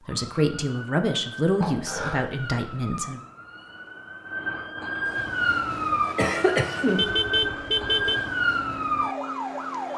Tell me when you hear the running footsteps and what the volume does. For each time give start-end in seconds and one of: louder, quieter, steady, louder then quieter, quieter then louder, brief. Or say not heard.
not heard.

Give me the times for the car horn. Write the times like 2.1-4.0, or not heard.
7.0-8.2.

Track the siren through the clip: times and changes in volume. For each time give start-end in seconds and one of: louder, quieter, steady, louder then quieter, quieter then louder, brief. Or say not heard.
0.0-9.9 louder.